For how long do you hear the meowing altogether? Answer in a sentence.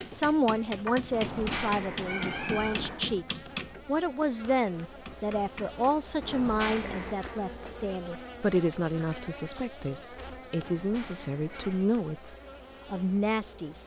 The meowing can be heard for 4 seconds in total.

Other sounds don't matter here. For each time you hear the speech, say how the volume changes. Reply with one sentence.
You can hear the speech from 0.0 to 13.8 s, at a steady volume.